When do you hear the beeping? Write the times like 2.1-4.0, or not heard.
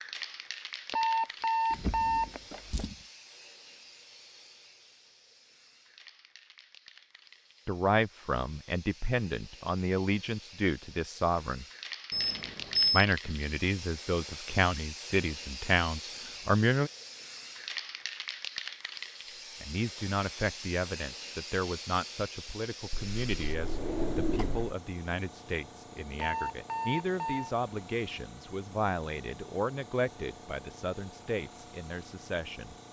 0.9-2.9, 12.1-13.1, 26.1-27.5.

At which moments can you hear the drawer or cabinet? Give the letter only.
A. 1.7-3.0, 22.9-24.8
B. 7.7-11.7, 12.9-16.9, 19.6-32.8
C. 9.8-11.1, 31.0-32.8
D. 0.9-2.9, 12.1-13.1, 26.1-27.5
A.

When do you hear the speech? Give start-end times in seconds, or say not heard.
7.7-11.7, 12.9-16.9, 19.6-32.8.